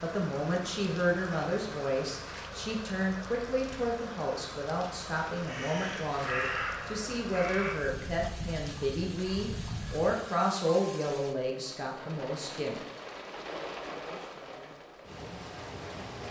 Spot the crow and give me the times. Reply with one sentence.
The crow can be heard from 5.4 to 10.2 s.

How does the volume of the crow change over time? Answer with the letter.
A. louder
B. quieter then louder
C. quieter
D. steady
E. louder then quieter
C.